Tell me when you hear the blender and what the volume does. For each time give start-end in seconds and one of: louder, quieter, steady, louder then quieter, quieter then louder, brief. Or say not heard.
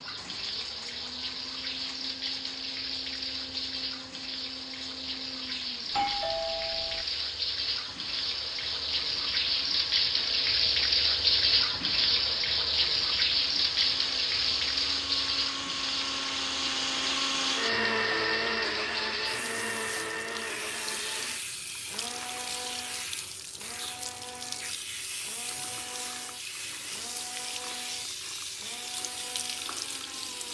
0.0-30.4 louder then quieter.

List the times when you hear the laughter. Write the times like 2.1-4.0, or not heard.
not heard.